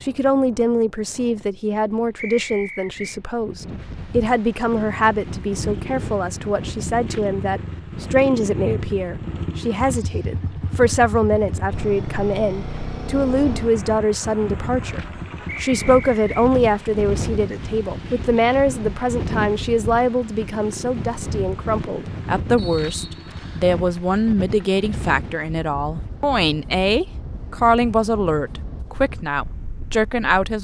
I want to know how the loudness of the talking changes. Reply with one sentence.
The volume of the talking stays about the same.